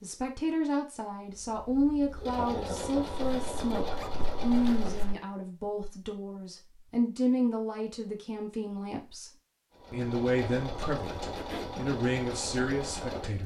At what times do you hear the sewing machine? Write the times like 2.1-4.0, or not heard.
1.3-5.2, 9.7-13.4.